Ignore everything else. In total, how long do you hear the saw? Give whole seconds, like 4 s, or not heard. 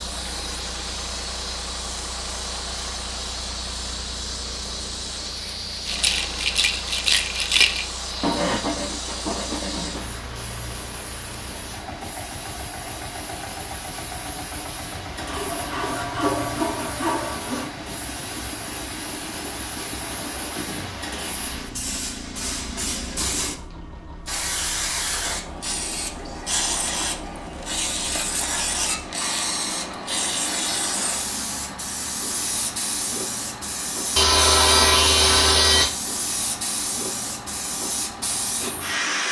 6 s.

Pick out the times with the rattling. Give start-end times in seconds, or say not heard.
5.8-7.8.